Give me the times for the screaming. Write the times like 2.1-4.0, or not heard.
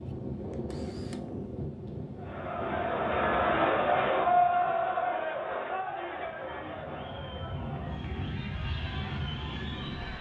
not heard.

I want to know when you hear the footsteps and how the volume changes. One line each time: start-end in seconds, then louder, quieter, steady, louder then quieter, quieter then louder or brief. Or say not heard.
not heard.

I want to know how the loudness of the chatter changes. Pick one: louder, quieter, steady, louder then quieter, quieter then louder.
quieter.